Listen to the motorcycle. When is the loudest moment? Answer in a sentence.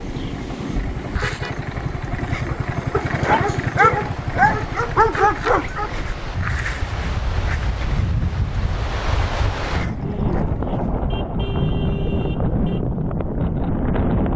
The loudest moment of the motorcycle is at 3 seconds.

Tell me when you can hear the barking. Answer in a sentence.
The barking can be heard from 2.9 to 5.9 s.